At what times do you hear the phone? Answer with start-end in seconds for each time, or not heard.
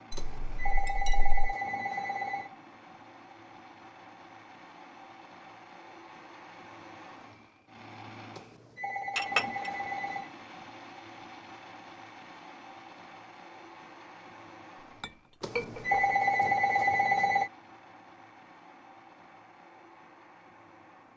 0.1-2.5, 8.3-10.3, 15.4-17.5.